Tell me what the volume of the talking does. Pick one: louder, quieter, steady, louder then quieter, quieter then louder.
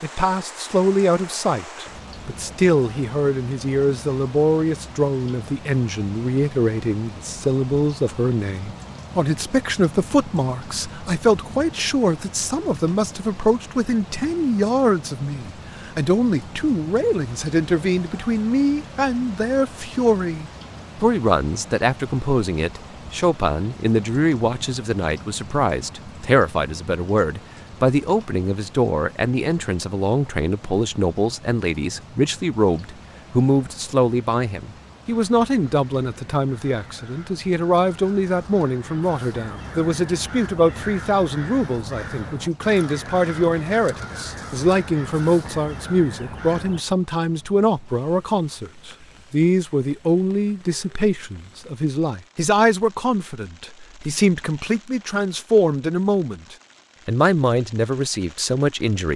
steady.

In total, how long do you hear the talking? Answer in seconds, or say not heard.
59 s.